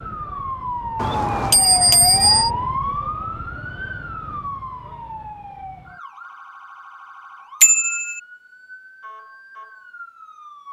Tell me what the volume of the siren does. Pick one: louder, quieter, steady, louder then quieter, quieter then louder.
quieter.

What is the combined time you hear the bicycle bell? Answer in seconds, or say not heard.
2 s.